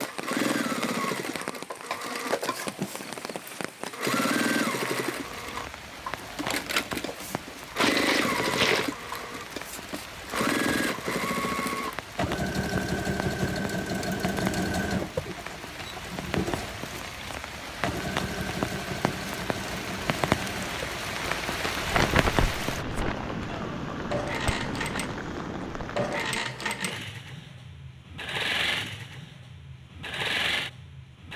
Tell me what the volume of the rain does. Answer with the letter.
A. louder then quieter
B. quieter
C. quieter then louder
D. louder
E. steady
D.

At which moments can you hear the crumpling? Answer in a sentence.
The crumpling can be heard from 7.8 to 8.9 s and from 21.2 to 23.1 s.